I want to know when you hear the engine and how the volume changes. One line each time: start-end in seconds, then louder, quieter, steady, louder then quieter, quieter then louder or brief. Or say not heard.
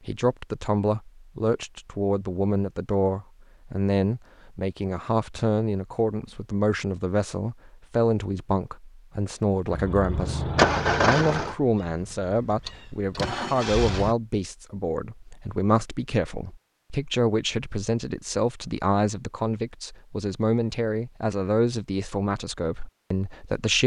9.7-14.2 quieter then louder.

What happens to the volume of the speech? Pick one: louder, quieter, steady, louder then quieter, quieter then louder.
steady.